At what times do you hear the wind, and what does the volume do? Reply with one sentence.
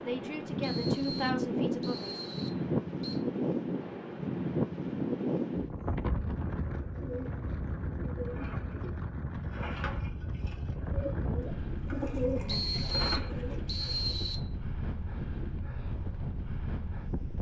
The wind can be heard from 0.0 to 17.3 s, getting quieter.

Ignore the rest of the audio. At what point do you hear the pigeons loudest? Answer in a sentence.
The volume of the pigeons peaks at 12 seconds.